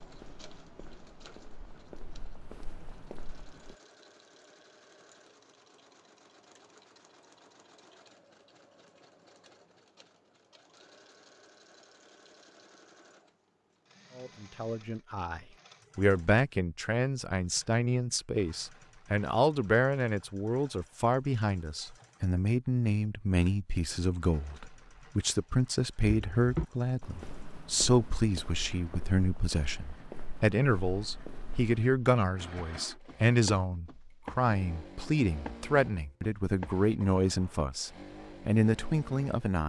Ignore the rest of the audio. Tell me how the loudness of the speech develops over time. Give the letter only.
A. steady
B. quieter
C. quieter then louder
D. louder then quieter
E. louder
A.